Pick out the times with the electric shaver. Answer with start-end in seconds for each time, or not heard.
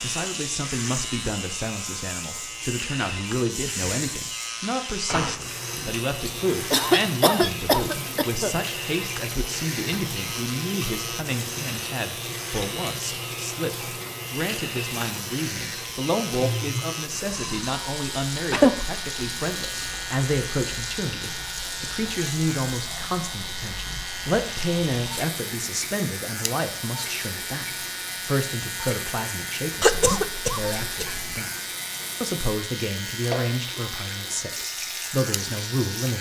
0.0-36.1.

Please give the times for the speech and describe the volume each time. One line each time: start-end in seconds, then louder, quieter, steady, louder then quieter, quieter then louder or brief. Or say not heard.
0.0-36.1 steady.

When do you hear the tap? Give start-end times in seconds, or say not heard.
0.0-36.1.